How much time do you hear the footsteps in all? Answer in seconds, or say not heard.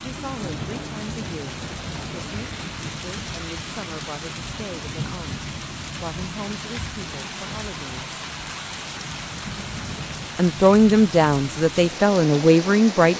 not heard.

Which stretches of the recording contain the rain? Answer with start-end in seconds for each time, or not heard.
0.0-13.1.